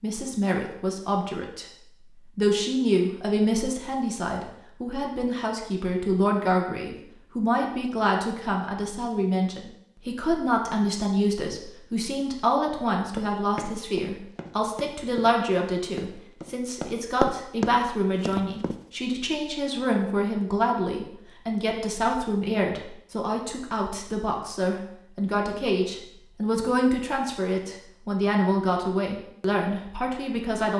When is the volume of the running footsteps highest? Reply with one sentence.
The volume of the running footsteps peaks at 17 seconds.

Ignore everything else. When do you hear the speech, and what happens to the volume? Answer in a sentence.
The speech can be heard from 0.0 to 30.7 s, at a steady volume.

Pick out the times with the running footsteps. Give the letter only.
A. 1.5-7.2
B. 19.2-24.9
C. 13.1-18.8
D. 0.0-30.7
C.